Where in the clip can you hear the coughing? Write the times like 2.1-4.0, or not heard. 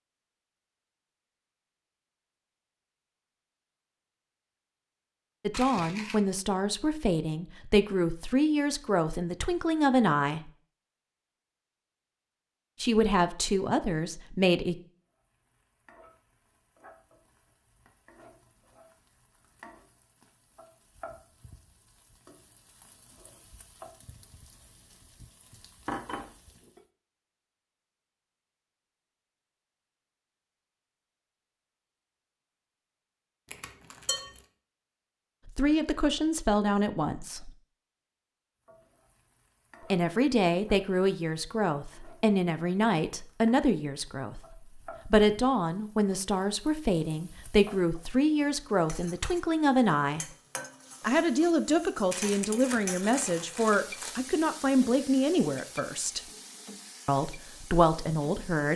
not heard.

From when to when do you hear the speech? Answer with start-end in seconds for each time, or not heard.
5.5-10.5, 12.8-14.8, 35.5-37.5, 39.9-50.2, 51.0-56.2, 57.0-58.7.